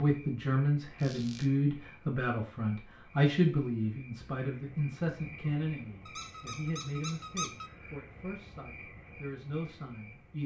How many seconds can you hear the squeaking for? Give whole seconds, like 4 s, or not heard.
2 s.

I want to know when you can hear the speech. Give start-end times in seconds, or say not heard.
0.0-10.4.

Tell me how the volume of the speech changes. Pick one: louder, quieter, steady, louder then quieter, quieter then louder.
quieter.